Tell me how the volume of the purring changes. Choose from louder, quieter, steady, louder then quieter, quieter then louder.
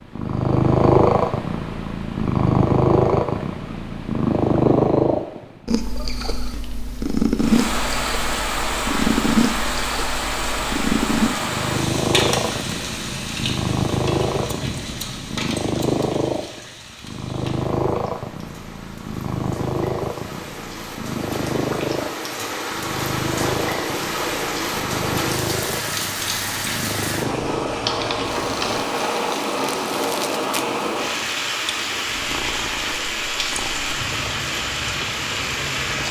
quieter.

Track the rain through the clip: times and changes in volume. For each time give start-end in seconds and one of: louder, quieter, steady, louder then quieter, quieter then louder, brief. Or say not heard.
7.3-36.0 quieter then louder.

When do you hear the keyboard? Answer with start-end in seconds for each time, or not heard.
27.2-28.9.